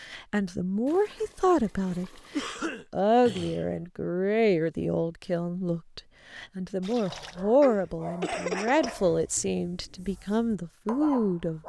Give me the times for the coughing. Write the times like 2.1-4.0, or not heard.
2.3-3.8, 7.6-8.9.